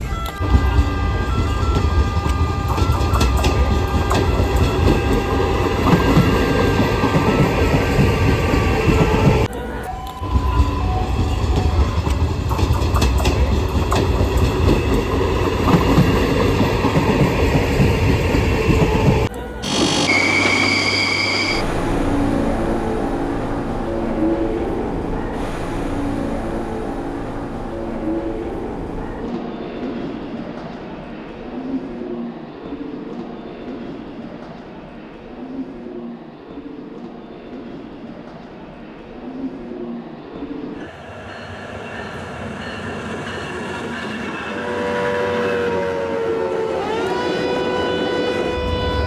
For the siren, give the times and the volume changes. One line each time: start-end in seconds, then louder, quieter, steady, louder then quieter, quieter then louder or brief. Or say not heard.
0.0-12.2 steady
44.4-49.0 steady.